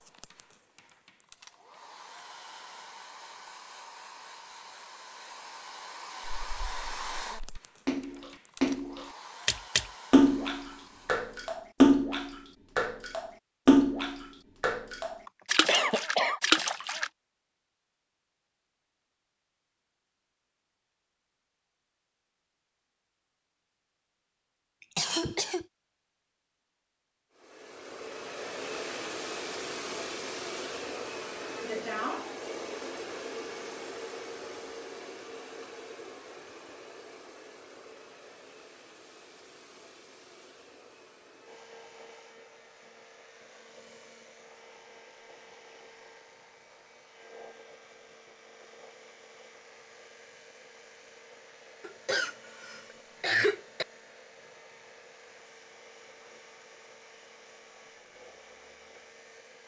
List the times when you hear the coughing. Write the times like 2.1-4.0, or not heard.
15.2-16.4, 24.9-25.6, 51.8-53.9.